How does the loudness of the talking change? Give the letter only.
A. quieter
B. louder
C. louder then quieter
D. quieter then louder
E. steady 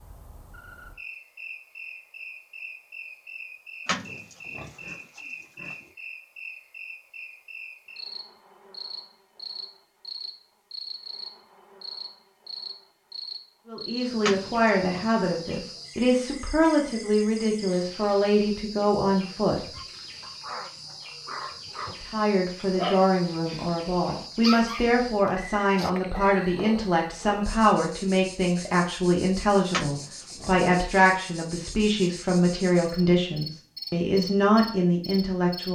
E.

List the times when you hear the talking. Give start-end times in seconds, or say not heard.
13.7-19.6, 22.0-35.7.